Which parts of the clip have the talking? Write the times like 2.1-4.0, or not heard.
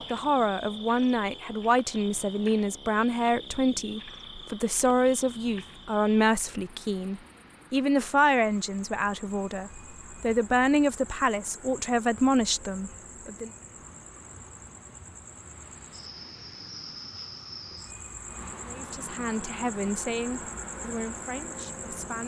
0.1-13.5, 18.6-22.2.